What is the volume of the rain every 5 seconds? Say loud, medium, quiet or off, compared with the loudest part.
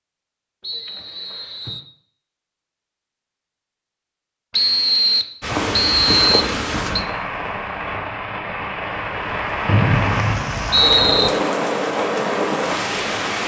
off, loud, loud.